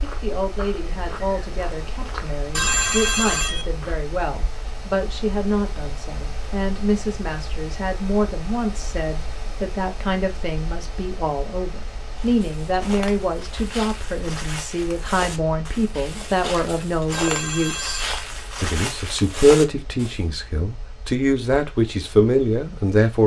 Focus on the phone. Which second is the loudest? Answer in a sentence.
The loudest moment of the phone is at 3 seconds.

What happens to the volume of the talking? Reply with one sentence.
The volume of the talking goes up.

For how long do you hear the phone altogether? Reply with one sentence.
You can hear the phone for 2 seconds altogether.